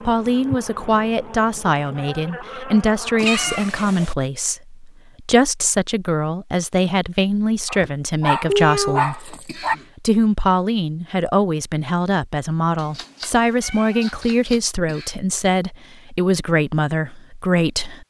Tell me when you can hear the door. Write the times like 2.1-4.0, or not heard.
not heard.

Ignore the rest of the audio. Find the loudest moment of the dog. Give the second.
9 s.